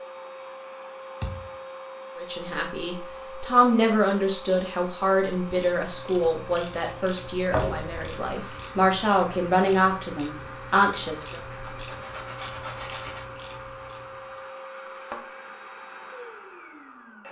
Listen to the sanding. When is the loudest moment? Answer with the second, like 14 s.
13 s.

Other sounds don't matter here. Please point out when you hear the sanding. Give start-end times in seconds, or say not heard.
11.4-13.2.